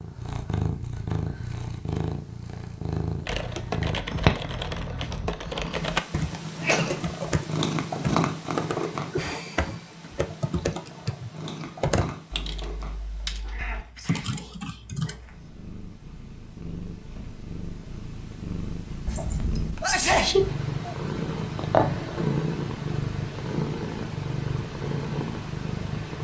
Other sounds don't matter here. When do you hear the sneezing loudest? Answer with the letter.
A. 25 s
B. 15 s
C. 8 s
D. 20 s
D.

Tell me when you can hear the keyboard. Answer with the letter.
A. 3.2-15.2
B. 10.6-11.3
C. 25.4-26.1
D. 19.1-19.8
A.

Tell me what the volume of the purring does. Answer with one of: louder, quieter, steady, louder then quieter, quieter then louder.
quieter then louder.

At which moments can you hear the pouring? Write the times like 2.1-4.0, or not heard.
19.1-19.8.